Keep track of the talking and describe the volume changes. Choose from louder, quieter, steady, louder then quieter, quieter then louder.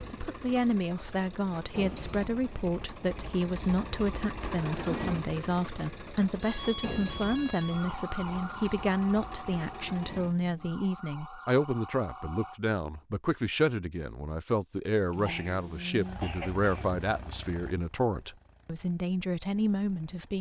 steady.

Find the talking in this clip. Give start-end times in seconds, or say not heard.
0.0-20.3.